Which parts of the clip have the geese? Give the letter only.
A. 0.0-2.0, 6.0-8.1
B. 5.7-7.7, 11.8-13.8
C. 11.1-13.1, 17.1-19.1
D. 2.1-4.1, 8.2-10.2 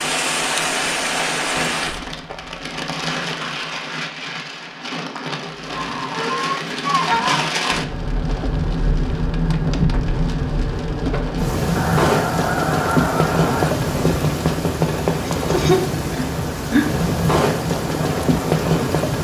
B.